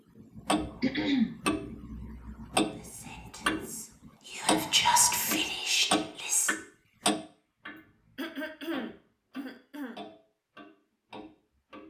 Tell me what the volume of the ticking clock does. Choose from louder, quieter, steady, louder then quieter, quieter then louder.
quieter.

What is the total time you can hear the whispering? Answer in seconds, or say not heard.
4 s.